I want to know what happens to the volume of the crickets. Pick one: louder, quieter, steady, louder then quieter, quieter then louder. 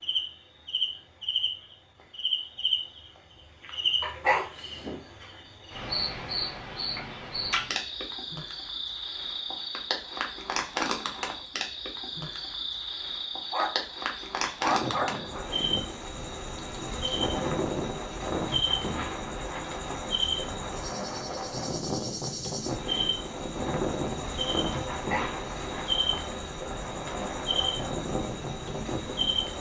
steady.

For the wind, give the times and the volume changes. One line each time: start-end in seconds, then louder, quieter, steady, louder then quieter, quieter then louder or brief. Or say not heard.
14.6-29.5 steady.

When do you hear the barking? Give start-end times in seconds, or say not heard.
4.0-5.0, 13.5-15.4, 24.9-25.9.